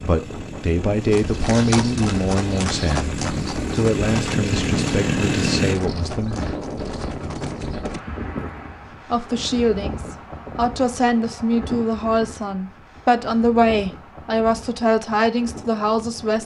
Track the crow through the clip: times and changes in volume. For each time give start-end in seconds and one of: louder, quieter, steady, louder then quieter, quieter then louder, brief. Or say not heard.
not heard.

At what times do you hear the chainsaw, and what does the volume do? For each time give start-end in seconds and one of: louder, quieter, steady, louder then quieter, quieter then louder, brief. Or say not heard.
0.0-5.8 louder.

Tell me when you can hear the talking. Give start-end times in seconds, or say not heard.
0.0-6.5, 9.1-16.3.